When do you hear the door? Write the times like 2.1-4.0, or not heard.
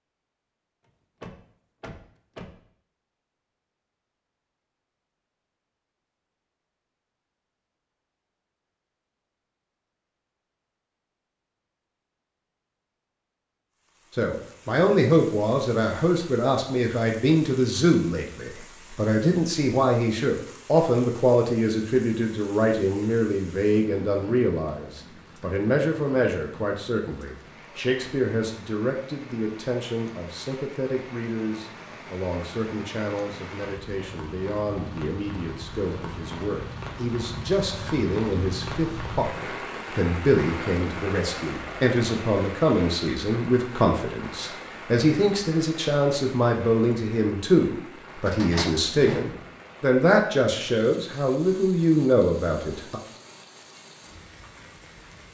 0.8-2.6, 48.2-49.5.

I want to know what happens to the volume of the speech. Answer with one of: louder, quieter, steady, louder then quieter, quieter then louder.
quieter then louder.